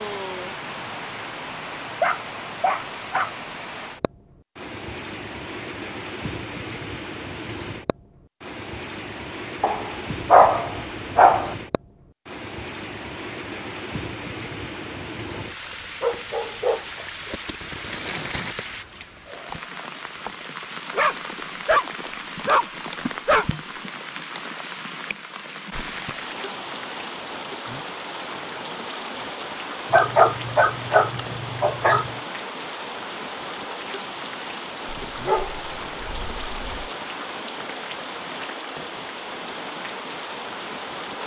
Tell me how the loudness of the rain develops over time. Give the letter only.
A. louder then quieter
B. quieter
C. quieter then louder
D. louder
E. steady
E.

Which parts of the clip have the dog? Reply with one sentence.
You can hear the dog from 2.0 to 3.3 s, from 9.6 to 11.6 s, from 15.3 to 17.4 s, from 20.9 to 23.6 s, from 29.9 to 32.1 s and from 34.9 to 36.9 s.